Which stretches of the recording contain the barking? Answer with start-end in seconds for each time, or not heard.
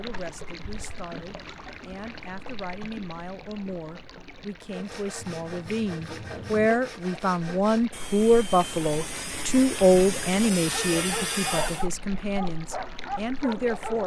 10.6-14.0.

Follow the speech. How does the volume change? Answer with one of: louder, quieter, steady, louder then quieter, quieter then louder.
louder then quieter.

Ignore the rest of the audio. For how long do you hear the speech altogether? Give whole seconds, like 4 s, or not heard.
14 s.